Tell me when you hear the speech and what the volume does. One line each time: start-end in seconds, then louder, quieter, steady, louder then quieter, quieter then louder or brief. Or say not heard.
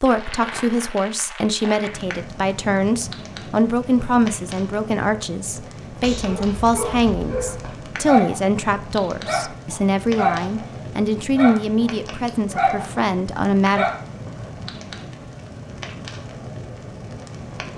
0.0-13.8 steady.